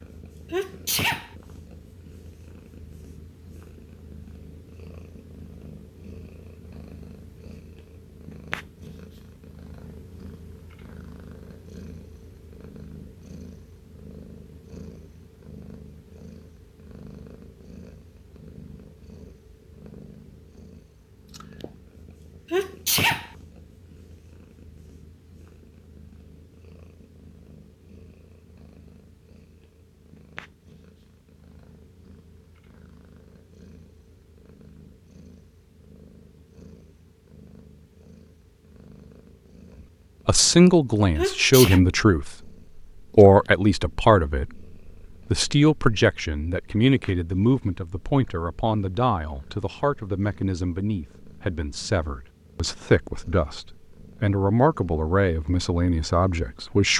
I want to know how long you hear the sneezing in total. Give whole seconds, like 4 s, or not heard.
2 s.